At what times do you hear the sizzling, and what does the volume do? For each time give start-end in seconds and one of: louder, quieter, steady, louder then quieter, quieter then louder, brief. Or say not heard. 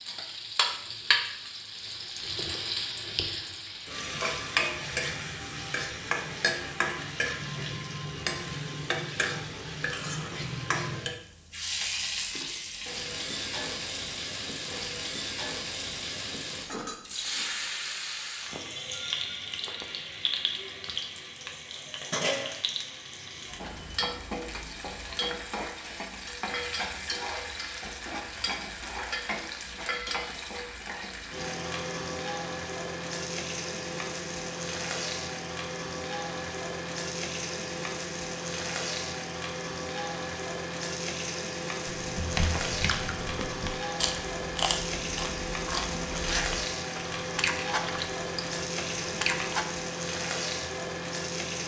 0.0-51.6 steady.